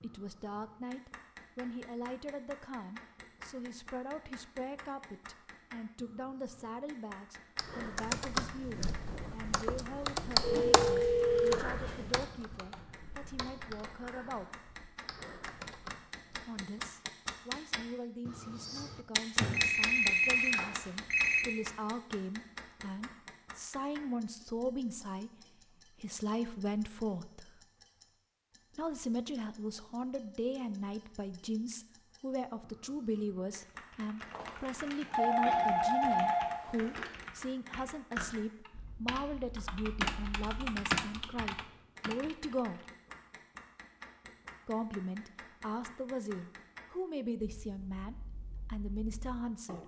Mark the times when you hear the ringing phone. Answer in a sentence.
The ringing phone can be heard from 10.4 to 12.2 s, from 19.4 to 21.4 s and from 34.3 to 37.1 s.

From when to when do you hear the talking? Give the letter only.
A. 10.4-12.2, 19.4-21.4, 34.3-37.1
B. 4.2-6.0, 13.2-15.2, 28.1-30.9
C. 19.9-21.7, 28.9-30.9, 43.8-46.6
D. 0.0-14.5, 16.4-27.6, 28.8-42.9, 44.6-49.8
D.